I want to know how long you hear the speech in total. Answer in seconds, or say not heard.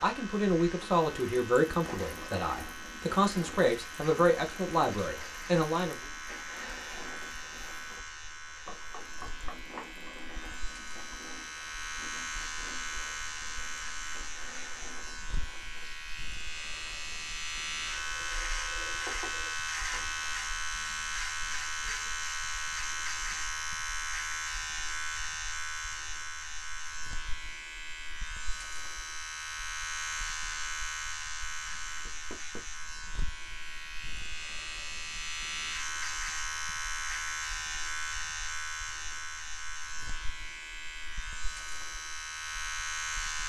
6 s.